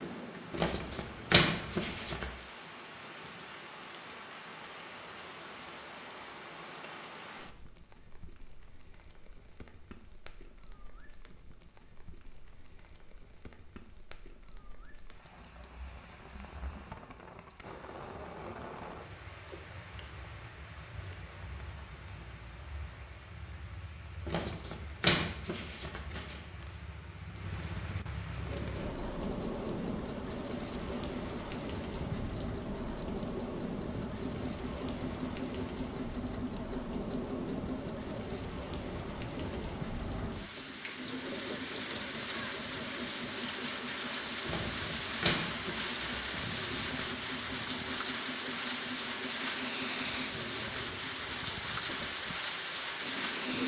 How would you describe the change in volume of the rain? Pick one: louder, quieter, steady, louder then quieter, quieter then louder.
louder.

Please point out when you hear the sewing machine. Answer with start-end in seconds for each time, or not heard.
28.4-53.6.